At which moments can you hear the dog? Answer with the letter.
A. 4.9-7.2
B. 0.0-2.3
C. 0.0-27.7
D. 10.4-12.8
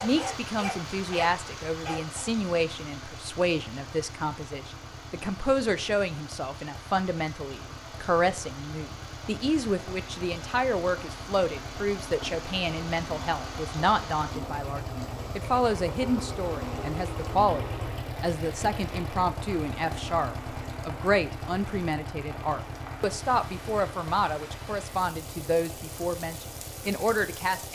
B.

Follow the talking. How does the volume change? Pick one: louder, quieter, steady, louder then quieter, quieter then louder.
steady.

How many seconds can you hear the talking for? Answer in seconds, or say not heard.
28 s.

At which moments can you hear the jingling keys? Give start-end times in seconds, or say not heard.
not heard.